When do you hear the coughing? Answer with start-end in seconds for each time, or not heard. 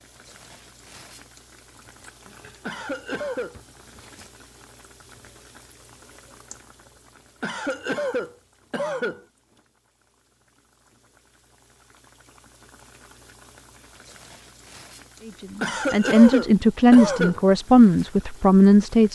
2.6-3.5, 7.4-9.2, 15.6-17.4.